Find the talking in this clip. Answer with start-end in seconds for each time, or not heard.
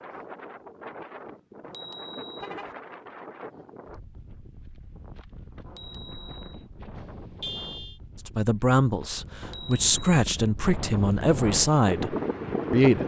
8.2-13.0.